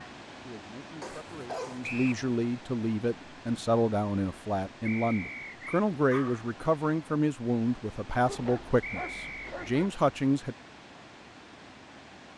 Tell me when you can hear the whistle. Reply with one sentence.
You can hear the whistle from 1.8 to 2.2 s, from 4.8 to 5.8 s and from 8.8 to 9.6 s.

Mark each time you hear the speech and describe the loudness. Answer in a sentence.
The speech can be heard from 0.0 to 10.6 s, getting louder.